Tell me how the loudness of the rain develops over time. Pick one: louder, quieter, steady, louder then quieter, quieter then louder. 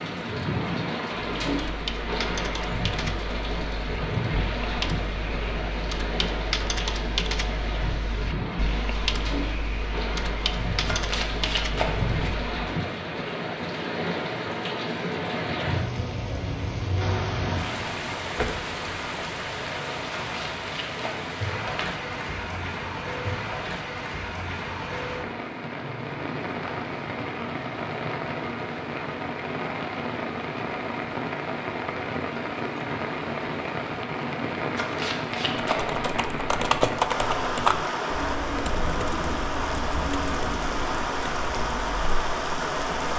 steady.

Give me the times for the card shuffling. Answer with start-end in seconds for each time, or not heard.
10.8-12.3, 20.2-21.9, 34.8-35.9.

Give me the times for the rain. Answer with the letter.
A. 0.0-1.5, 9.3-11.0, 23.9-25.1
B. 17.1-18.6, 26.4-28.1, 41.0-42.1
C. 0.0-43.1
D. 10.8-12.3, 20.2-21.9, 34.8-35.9
C.